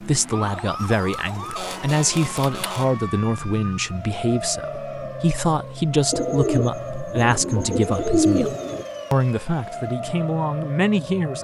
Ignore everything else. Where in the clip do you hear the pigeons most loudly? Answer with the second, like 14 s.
8 s.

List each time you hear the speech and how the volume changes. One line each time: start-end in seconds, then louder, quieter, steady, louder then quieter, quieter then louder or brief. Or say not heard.
0.0-11.3 steady.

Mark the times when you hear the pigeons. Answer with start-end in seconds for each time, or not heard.
1.1-2.6, 6.1-8.8.